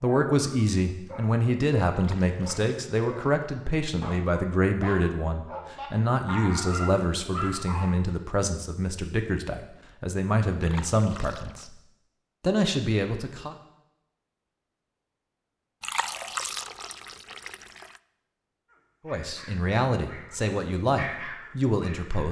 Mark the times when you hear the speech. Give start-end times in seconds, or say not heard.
0.0-11.8, 12.4-13.6, 19.1-22.2.